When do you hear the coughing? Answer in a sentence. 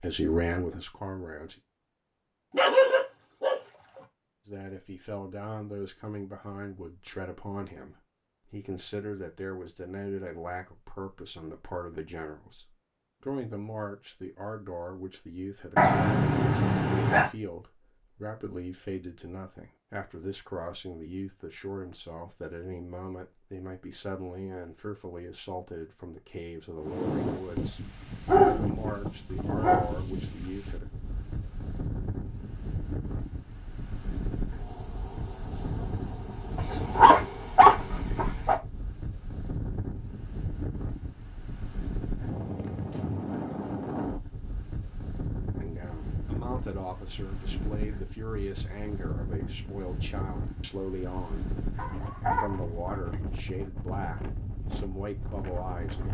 The coughing can't be heard in this clip.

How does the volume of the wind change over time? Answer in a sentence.
The volume of the wind stays about the same.